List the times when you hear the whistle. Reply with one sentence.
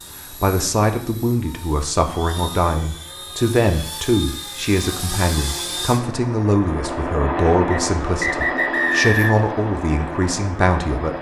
You can hear the whistle from 7.7 to 9.5 s.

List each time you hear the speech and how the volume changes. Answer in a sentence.
You can hear the speech from 0.3 to 11.1 s, at a steady volume.